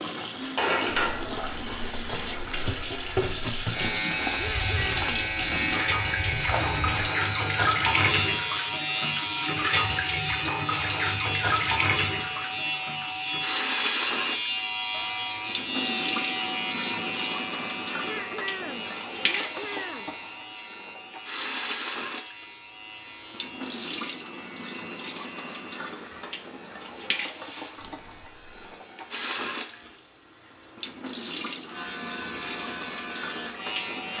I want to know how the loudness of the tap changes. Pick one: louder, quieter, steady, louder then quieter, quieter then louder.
quieter.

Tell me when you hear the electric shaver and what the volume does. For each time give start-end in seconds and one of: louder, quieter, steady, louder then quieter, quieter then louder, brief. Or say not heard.
3.7-29.9 quieter
31.7-34.1 brief.